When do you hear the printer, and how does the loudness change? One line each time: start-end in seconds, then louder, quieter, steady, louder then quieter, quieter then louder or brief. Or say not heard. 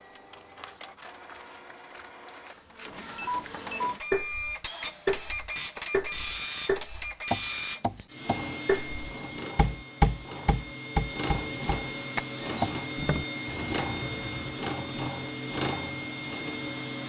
0.0-17.0 louder.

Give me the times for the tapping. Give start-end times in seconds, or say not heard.
4.1-13.2.